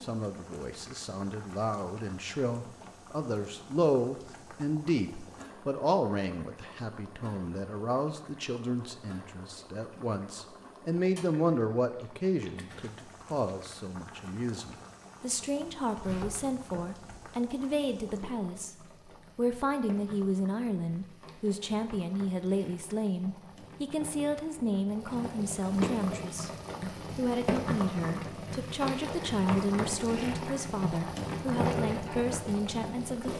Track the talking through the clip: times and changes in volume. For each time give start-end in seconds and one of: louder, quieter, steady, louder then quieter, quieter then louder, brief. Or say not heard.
0.0-18.8 steady
19.4-33.3 steady.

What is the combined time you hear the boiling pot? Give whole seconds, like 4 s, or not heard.
33 s.